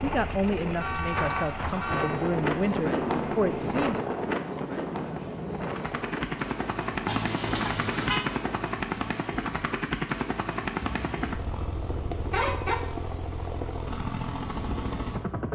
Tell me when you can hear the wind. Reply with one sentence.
You can hear the wind from 0.0 to 8.8 s.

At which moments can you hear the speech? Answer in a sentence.
The speech can be heard from 0.0 to 4.0 s.